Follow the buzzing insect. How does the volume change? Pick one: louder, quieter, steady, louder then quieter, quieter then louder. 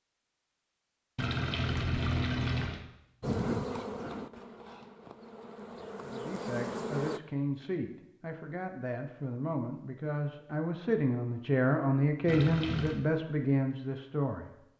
quieter then louder.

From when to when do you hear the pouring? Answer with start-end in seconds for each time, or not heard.
1.1-2.9, 12.2-13.1.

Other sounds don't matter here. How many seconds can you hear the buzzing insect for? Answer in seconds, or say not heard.
4 s.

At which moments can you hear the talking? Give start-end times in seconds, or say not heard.
6.0-14.5.